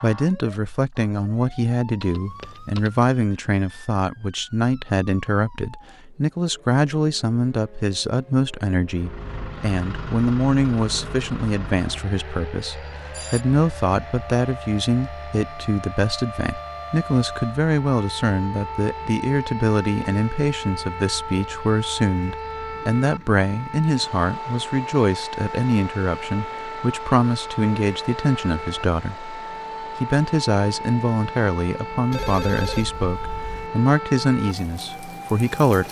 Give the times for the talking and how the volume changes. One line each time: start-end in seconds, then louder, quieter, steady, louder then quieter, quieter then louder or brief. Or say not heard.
0.0-35.8 steady.